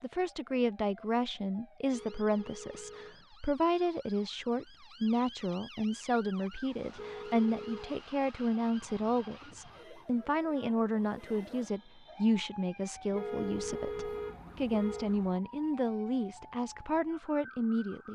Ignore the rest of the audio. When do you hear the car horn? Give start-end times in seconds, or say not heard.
1.9-3.2, 7.0-8.0, 13.1-15.2.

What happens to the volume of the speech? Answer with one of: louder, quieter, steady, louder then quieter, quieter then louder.
steady.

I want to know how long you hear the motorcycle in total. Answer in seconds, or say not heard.
not heard.